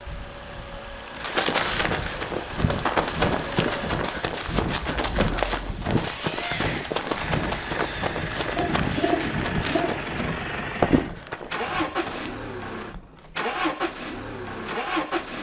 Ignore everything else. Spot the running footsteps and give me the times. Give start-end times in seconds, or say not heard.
1.1-12.3.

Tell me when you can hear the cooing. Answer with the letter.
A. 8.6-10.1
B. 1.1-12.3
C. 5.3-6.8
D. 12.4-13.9
A.